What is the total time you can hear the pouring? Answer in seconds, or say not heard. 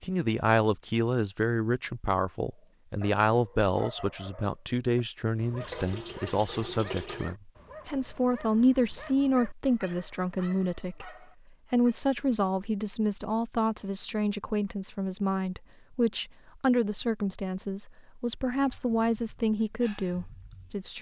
2 s.